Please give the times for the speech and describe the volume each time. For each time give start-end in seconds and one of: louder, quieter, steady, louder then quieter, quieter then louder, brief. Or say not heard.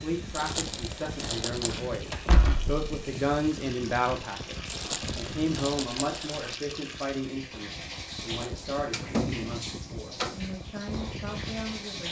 0.0-12.0 louder then quieter.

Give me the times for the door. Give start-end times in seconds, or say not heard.
1.6-2.8, 8.8-10.3.